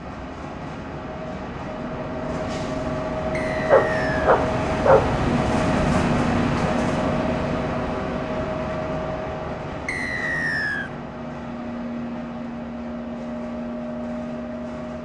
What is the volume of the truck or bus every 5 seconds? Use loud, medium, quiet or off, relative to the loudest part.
loud, loud, medium.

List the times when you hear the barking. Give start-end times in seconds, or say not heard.
3.7-5.1.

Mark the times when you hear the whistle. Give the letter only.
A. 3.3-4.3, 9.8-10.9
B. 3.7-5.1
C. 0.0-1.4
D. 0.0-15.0
A.